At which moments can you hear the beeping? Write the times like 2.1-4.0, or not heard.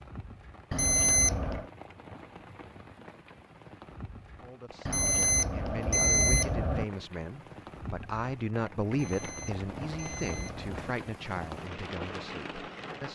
0.7-1.7, 4.8-6.8, 8.9-10.9.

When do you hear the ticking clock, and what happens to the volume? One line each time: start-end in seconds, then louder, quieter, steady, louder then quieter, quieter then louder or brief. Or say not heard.
not heard.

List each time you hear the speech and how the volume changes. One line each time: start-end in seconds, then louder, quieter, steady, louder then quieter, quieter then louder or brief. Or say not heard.
4.3-13.0 louder then quieter.